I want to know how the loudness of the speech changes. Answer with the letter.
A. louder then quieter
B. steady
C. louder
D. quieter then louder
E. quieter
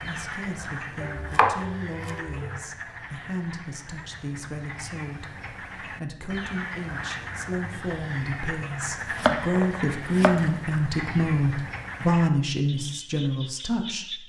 C.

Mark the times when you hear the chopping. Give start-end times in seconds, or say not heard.
1.0-2.6, 9.0-10.5.